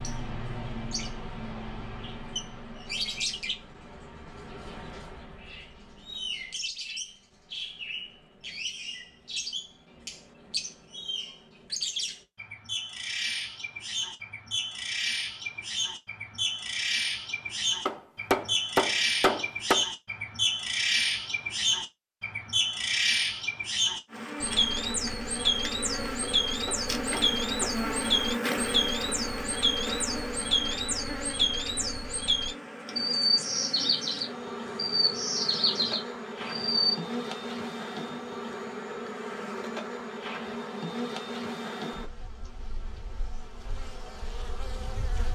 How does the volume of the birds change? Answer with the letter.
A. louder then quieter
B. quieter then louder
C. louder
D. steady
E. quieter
C.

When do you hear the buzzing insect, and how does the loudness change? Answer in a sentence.
You can hear the buzzing insect from 24.1 to 45.3 s, getting quieter.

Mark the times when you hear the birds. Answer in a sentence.
You can hear the birds from 0.0 to 37.0 s.